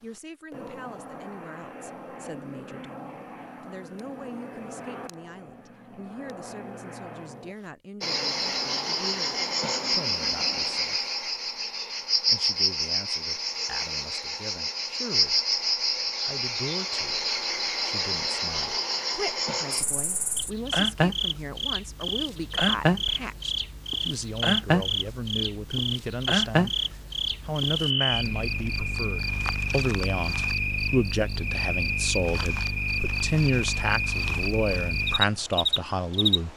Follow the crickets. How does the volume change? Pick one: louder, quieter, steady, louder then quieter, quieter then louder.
steady.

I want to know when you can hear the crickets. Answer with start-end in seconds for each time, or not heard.
8.0-36.5.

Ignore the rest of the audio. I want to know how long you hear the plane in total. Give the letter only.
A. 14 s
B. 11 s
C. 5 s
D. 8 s
B.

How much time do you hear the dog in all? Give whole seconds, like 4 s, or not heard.
not heard.